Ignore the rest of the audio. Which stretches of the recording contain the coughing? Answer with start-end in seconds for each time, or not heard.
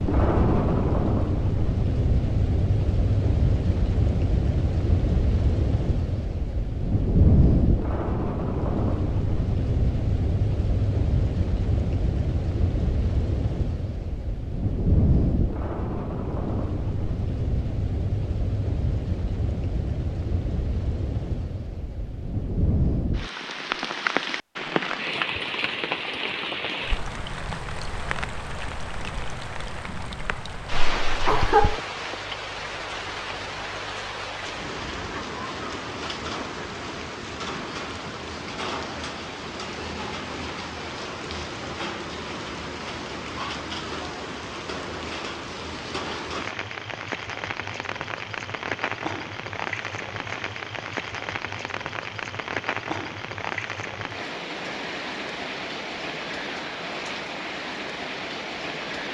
30.9-31.8.